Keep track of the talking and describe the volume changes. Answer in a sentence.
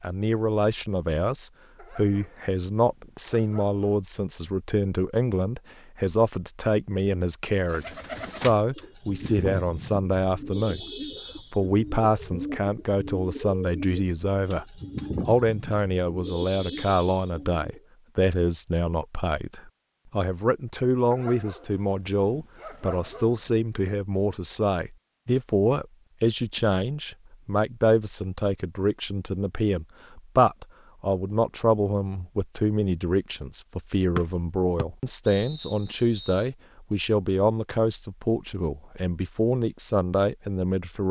The loudness of the talking stays about the same.